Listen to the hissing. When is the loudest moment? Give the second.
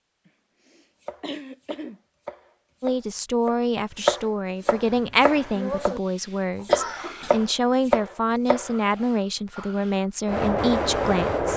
11 s.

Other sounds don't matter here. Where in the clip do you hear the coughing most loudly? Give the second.
7 s.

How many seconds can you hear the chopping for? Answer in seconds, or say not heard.
7 s.